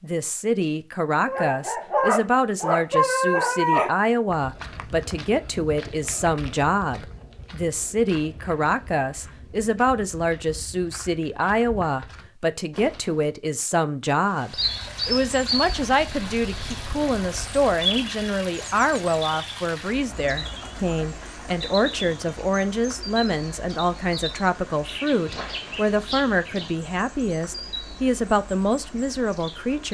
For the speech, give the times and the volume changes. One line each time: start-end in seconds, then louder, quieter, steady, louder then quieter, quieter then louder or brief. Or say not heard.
0.0-29.8 steady.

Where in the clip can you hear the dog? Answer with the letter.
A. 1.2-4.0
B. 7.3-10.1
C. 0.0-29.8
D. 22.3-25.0
A.